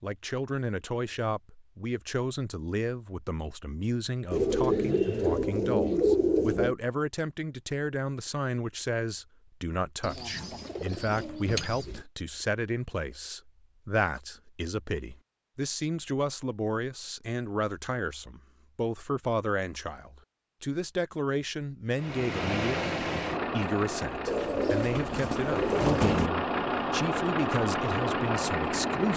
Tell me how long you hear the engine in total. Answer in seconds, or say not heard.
7 s.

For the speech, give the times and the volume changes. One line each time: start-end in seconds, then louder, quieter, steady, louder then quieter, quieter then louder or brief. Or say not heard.
0.0-29.1 steady.